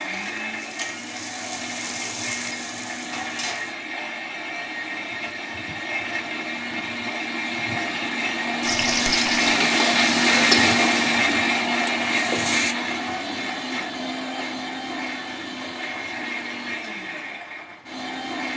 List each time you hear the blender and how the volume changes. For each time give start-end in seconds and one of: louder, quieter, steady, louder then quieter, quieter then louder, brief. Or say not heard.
0.0-18.5 louder then quieter.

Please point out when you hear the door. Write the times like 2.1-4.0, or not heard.
not heard.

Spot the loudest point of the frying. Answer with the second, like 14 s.
10 s.